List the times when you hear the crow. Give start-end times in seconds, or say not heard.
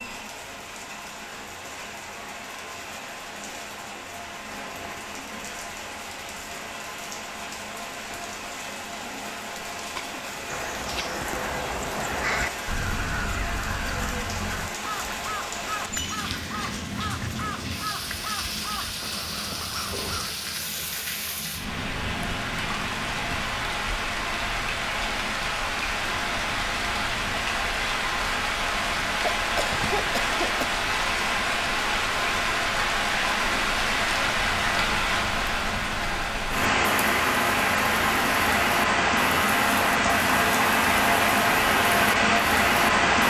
10.4-20.4.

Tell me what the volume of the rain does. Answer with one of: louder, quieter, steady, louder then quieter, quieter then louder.
louder.